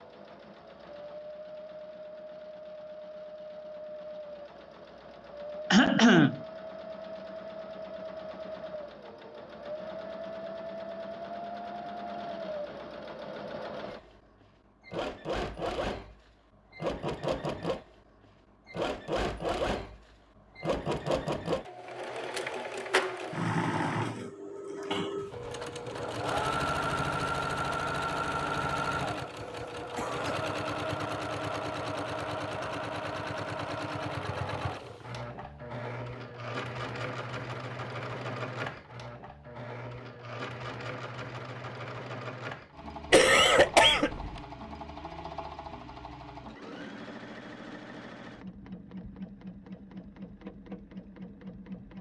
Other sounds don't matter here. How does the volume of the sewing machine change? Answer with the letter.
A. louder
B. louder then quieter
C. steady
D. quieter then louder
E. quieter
B.